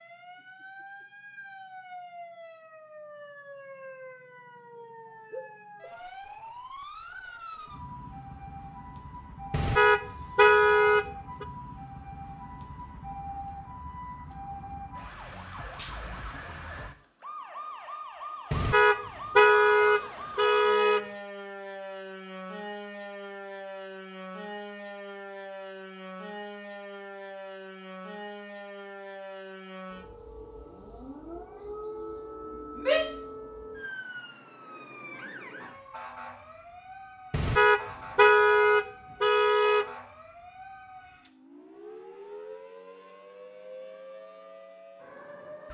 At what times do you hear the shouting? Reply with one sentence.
You can hear the shouting from 32.8 to 33.2 s.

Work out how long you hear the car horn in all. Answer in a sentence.
The car horn can be heard for 7 seconds in total.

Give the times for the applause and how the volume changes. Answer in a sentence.
You can't hear the applause here.